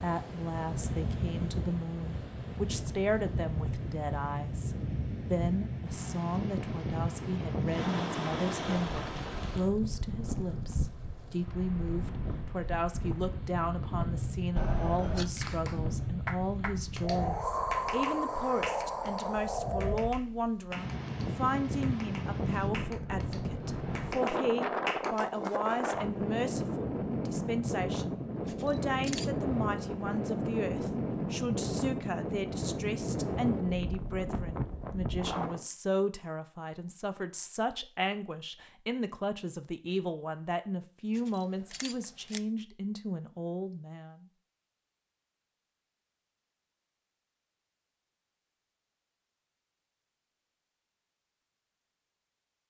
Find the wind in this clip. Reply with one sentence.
You can hear the wind from 0.0 to 35.6 s.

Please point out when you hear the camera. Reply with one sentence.
You can hear the camera from 14.6 to 15.3 s, from 28.4 to 29.3 s and from 41.1 to 42.4 s.